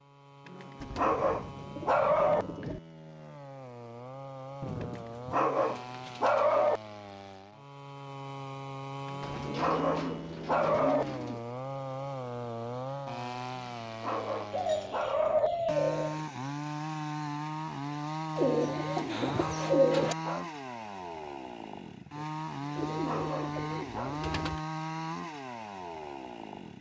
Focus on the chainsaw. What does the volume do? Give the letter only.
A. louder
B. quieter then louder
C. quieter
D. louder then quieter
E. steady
A.